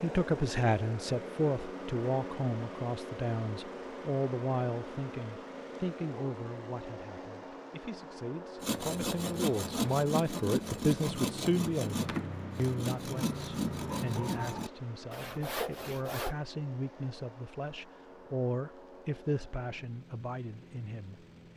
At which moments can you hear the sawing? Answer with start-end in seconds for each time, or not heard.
8.6-16.4.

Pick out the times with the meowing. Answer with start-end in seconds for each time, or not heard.
not heard.